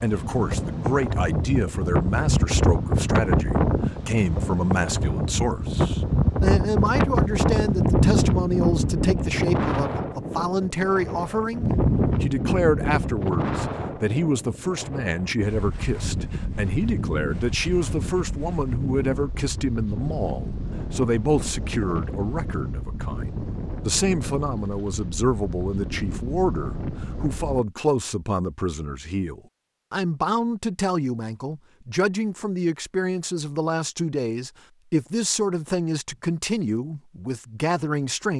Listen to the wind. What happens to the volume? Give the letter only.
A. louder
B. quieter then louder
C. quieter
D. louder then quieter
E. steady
C.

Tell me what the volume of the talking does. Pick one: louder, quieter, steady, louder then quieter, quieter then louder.
steady.